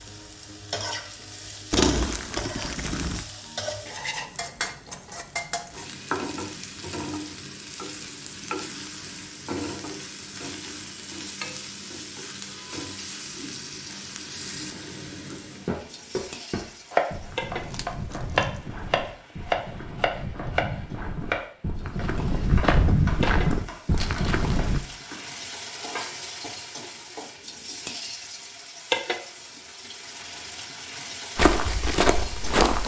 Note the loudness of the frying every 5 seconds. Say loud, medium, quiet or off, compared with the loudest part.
loud, loud, loud, medium, medium, loud, loud.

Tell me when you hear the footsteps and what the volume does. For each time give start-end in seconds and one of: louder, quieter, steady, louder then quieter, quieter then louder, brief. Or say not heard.
15.7-24.8 louder
31.4-32.8 brief.